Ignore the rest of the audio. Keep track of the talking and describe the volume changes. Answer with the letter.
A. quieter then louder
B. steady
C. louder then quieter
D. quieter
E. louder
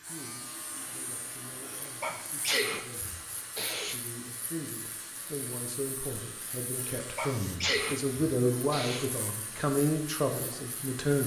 E.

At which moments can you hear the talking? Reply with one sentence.
You can hear the talking from 0.0 to 11.2 s.